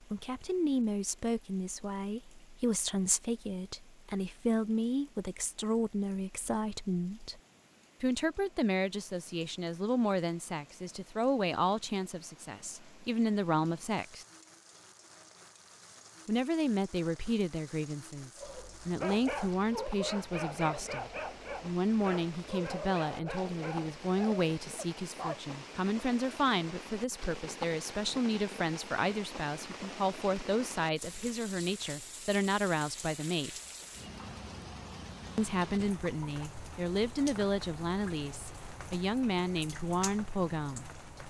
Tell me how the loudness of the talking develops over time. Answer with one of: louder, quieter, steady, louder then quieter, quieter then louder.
steady.